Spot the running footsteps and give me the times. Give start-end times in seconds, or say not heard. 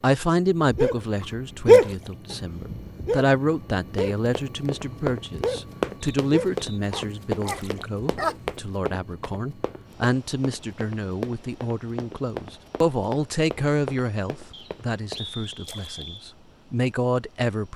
4.0-15.6.